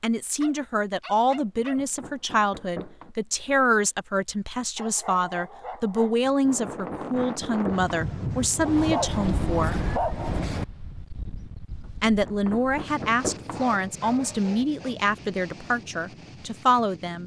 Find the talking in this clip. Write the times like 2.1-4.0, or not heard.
0.0-9.9, 12.0-17.2.